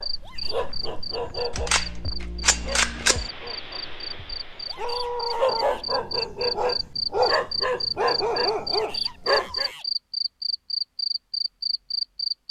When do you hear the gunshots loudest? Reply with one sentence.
The loudest moment of the gunshots is at 3 seconds.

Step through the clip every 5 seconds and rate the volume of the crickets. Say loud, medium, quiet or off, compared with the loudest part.
medium, loud, loud.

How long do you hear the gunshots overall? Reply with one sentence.
The gunshots can be heard for 2 seconds in total.